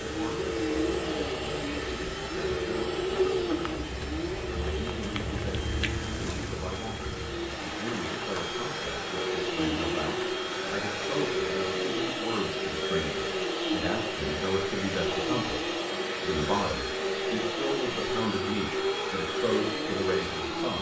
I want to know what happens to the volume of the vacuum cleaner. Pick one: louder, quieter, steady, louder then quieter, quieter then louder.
quieter then louder.